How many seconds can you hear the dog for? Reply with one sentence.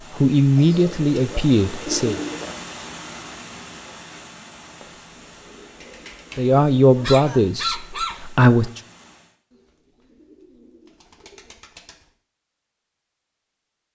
The dog can be heard for 2 seconds in total.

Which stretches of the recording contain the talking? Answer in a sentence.
You can hear the talking from 0.1 to 2.2 s and from 6.3 to 8.8 s.